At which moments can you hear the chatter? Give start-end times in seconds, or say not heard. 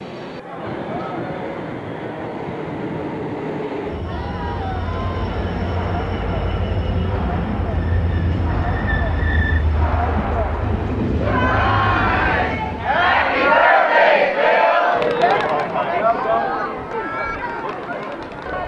0.2-18.6.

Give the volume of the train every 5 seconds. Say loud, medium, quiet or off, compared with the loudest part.
loud, loud, loud, off.